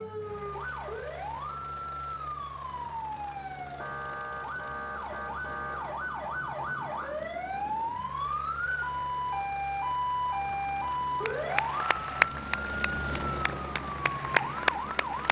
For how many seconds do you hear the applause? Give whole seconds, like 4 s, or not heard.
4 s.